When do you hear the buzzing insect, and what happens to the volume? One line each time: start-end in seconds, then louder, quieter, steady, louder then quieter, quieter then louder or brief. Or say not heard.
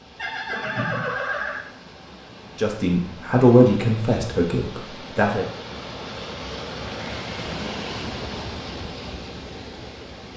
not heard.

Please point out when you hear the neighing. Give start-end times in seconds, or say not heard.
0.1-1.6.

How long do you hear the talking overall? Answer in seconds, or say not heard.
3 s.